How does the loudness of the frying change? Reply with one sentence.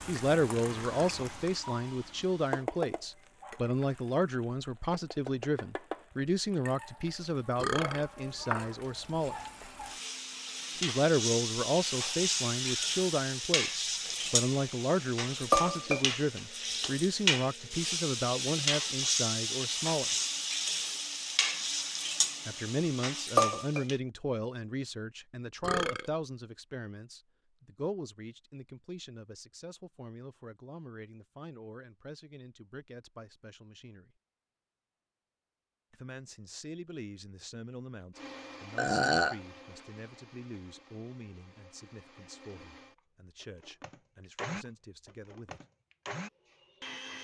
The loudness of the frying goes up.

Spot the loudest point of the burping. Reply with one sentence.
The loudest moment of the burping is at 39 seconds.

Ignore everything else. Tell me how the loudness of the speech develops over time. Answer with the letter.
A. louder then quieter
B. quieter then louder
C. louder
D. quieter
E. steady
D.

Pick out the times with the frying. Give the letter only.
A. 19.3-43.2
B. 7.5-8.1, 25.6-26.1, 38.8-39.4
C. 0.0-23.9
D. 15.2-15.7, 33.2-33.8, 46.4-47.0
C.